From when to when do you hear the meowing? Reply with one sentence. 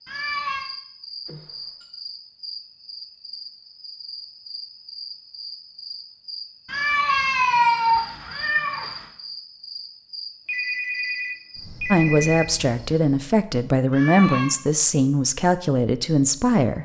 The meowing can be heard from 0.1 to 0.7 s, from 6.7 to 9.1 s and from 13.9 to 14.6 s.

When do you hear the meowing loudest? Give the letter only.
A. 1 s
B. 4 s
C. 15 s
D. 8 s
D.